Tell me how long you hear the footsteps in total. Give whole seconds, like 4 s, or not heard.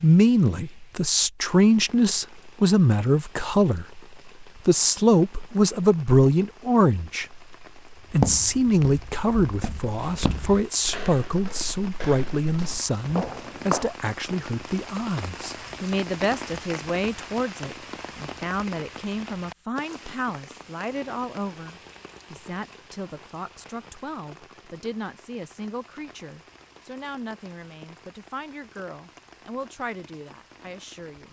6 s.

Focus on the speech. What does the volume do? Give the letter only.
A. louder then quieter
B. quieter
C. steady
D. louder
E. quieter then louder
B.